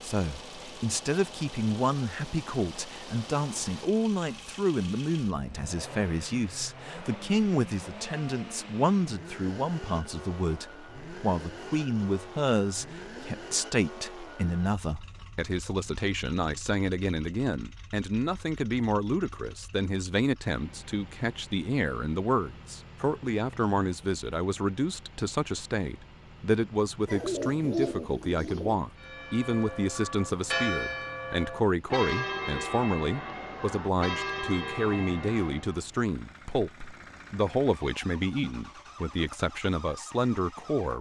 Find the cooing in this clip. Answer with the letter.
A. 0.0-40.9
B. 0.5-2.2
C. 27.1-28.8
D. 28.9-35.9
C.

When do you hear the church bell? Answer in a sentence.
The church bell can be heard from 28.9 to 35.9 s.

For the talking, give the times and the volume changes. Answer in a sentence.
You can hear the talking from 0.0 to 40.9 s, at a steady volume.